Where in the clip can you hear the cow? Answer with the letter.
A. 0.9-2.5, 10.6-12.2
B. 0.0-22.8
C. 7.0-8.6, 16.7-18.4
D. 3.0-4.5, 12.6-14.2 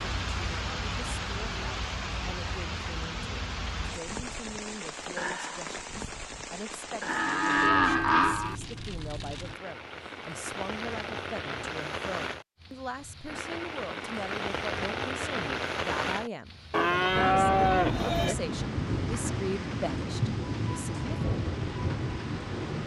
C.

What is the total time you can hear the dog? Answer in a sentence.
You can't hear the dog here.